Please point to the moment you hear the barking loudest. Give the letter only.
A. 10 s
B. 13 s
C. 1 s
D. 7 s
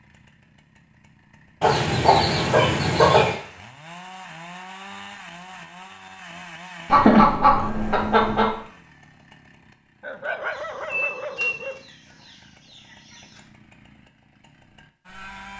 A.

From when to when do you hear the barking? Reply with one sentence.
The barking can be heard from 10.0 to 11.8 s.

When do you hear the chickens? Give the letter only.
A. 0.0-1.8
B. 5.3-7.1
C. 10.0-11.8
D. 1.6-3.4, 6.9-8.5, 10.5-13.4
D.